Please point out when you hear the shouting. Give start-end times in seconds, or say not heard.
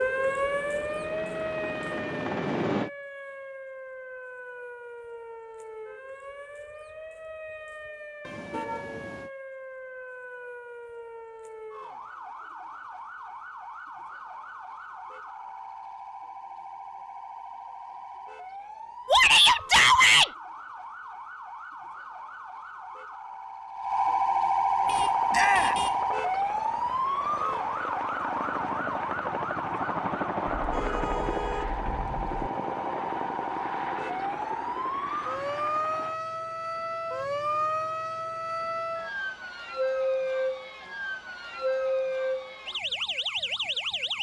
19.1-20.3, 25.3-25.9.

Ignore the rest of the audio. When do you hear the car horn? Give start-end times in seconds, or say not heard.
8.2-9.3, 24.8-26.0, 30.5-32.4.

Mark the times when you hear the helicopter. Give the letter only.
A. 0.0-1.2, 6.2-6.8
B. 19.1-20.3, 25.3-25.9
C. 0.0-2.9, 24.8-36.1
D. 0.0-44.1
C.